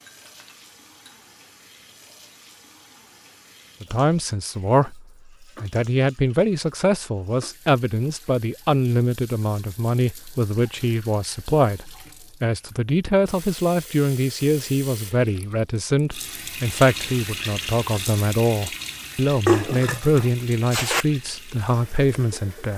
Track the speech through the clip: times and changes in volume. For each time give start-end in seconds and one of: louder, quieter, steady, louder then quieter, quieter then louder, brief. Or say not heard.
3.8-22.7 steady.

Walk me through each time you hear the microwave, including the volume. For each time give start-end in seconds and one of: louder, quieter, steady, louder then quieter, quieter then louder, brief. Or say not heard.
not heard.